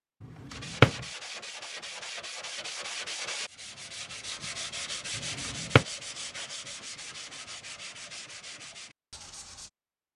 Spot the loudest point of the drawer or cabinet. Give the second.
1 s.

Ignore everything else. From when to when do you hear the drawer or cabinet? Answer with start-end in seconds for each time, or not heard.
0.6-1.1, 5.2-5.8.